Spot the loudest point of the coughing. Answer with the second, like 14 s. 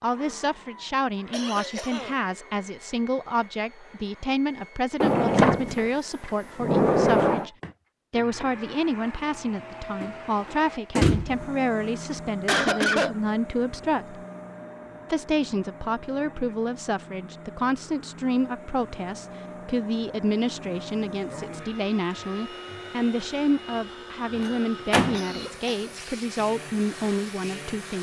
13 s.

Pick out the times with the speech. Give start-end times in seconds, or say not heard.
0.0-7.5, 8.1-14.2, 15.1-27.9.